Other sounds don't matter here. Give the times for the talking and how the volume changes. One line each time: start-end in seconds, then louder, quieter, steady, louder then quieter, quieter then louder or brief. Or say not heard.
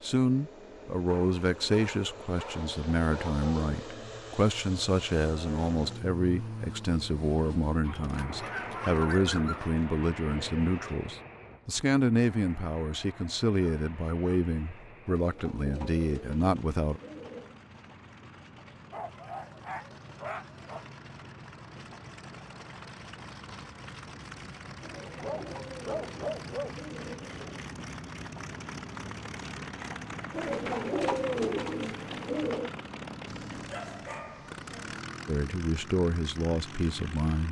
0.0-17.0 steady
35.2-37.4 brief.